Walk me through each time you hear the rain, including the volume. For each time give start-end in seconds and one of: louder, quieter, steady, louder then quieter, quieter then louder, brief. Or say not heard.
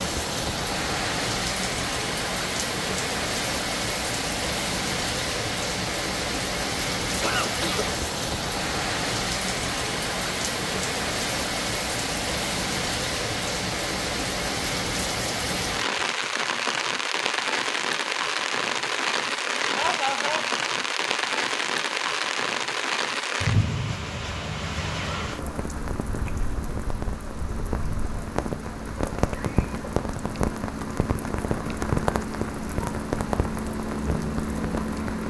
0.0-35.2 steady.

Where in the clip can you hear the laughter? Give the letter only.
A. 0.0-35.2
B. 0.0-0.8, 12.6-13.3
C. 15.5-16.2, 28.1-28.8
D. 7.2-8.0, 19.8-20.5
D.